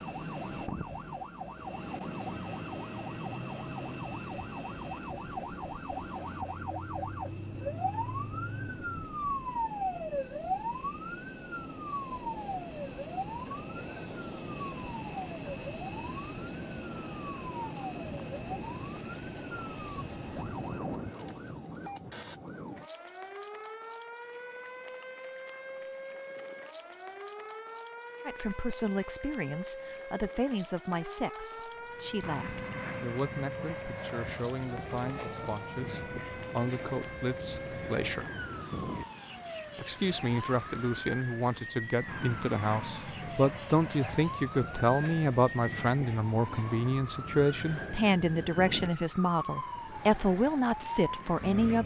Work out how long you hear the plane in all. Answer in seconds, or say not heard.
42 s.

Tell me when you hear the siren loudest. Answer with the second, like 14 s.
10 s.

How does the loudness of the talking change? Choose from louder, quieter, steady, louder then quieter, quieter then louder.
louder.